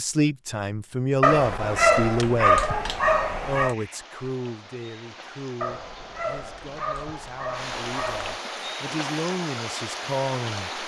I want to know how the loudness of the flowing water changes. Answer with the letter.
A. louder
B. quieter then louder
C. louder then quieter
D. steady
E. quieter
A.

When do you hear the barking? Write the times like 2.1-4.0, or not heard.
1.2-3.8, 5.6-8.4.